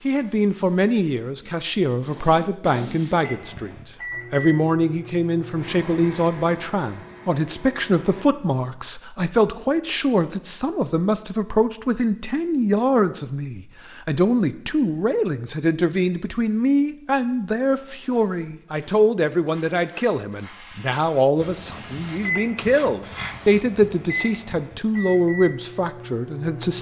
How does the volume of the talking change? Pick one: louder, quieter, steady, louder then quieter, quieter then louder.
steady.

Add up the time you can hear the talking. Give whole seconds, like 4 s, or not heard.
26 s.